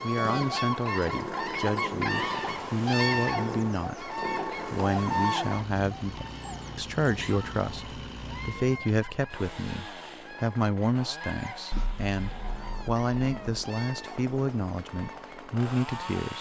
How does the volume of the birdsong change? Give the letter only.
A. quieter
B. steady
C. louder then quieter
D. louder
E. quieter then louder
A.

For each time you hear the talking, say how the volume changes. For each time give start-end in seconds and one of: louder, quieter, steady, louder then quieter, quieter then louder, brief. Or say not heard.
0.0-16.3 steady.